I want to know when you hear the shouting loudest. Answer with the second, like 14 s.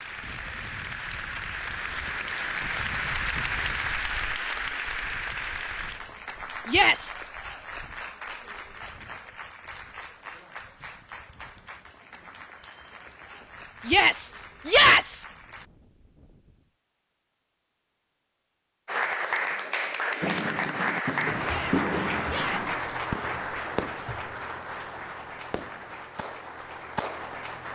15 s.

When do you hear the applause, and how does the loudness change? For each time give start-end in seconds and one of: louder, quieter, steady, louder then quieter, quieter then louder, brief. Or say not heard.
0.0-15.7 quieter
18.9-27.7 quieter.